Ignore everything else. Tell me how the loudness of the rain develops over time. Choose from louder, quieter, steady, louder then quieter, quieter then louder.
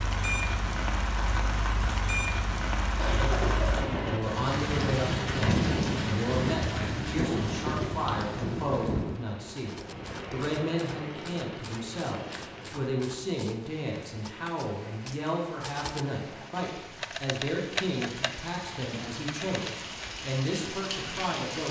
quieter then louder.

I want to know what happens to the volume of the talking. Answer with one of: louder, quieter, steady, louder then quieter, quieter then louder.
steady.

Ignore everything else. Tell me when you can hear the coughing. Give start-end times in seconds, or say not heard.
3.0-4.3.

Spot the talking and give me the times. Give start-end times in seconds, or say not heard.
3.1-21.6.